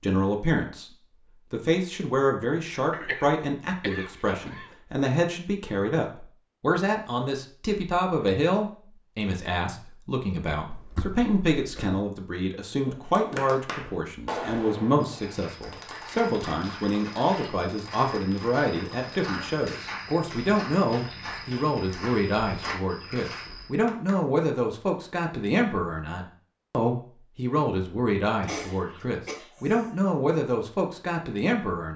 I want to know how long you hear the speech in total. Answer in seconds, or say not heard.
32 s.